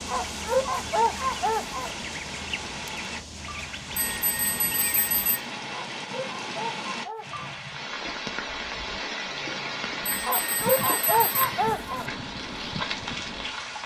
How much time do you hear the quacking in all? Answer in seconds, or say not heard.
10 s.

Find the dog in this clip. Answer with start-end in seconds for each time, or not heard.
0.1-1.9, 5.7-7.5, 10.2-12.1.